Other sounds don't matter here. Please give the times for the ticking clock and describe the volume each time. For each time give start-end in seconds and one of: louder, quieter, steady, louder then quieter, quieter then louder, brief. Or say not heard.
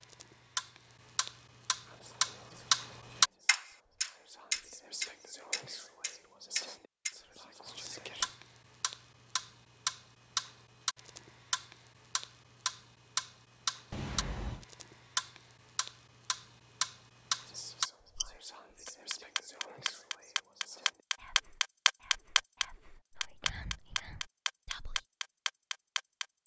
0.0-26.4 quieter then louder.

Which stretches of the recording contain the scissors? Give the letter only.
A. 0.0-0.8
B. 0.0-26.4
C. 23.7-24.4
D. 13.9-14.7
D.